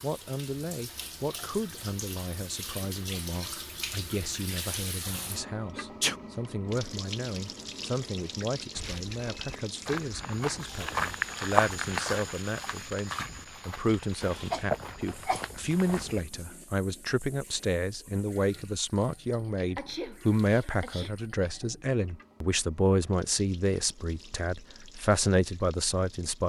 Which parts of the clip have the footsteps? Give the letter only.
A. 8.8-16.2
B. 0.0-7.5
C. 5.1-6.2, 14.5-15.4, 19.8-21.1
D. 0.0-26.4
A.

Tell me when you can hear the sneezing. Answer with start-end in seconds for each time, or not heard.
5.1-6.2, 14.5-15.4, 19.8-21.1.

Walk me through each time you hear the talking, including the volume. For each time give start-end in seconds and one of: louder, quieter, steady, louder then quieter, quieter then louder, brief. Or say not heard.
0.0-26.4 louder.